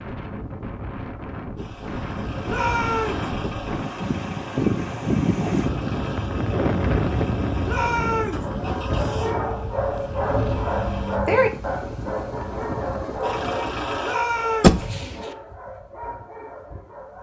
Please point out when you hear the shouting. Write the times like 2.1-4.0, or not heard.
2.5-3.3, 7.7-8.4, 14.0-14.8.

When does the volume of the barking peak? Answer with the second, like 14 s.
11 s.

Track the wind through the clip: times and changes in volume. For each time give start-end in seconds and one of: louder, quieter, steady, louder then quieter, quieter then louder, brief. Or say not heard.
0.0-13.8 louder then quieter.